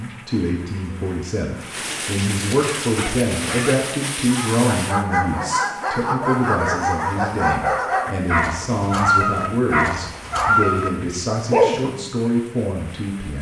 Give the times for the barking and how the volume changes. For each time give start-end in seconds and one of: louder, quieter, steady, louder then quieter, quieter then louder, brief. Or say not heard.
2.8-12.1 louder.